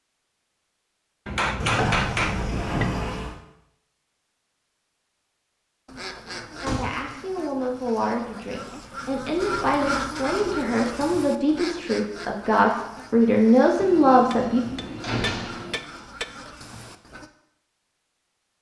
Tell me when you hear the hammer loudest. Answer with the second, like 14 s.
2 s.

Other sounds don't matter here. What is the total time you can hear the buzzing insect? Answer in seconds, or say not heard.
not heard.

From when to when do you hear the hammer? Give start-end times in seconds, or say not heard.
1.2-2.9, 14.3-16.2.